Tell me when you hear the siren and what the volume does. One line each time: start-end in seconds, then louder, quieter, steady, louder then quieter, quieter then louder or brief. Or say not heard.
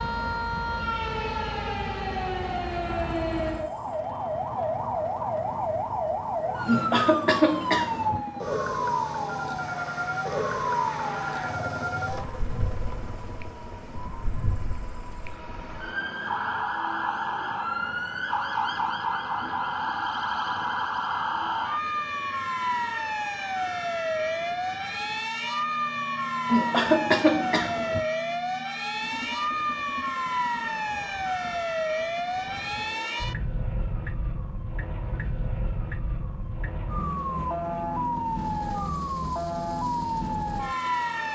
0.0-41.3 steady.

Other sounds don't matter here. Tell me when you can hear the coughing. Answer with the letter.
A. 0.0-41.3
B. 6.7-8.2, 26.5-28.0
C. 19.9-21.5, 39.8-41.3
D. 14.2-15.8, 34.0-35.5
B.